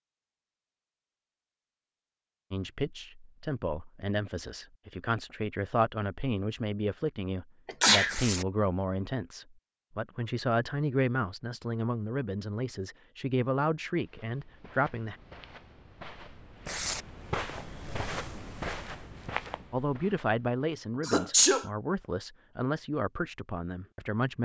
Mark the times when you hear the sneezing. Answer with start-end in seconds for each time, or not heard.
7.7-8.2, 21.1-21.6.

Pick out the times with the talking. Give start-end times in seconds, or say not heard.
2.5-15.2, 19.7-24.4.